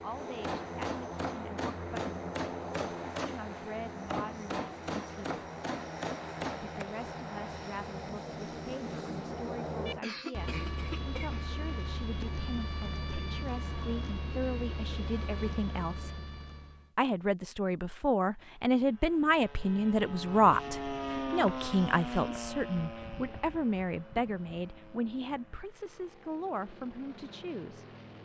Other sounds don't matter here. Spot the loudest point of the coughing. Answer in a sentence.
The loudest moment of the coughing is at 10 seconds.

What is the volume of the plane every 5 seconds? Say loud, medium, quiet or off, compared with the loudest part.
loud, loud, loud, medium, loud, quiet.